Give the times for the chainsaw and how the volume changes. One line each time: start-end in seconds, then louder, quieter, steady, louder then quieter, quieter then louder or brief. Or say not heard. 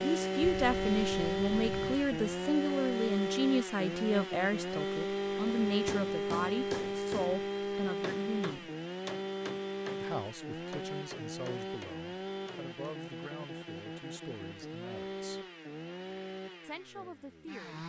0.0-17.8 quieter.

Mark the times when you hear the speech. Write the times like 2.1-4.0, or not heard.
0.0-8.7, 10.0-15.4, 16.6-17.8.